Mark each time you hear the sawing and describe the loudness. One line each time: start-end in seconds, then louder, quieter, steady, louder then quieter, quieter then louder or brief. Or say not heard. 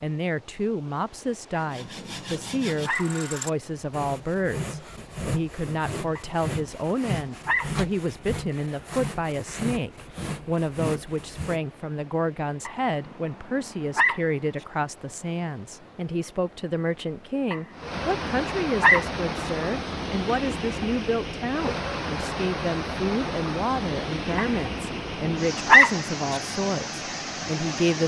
1.6-11.7 steady.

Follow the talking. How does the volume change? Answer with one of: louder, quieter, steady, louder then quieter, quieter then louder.
steady.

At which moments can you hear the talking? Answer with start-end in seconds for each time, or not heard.
0.0-28.0.